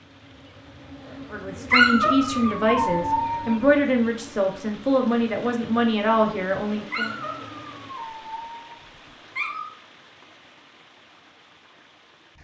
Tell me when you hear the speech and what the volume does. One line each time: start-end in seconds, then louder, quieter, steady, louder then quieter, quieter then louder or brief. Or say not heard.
1.3-7.2 steady.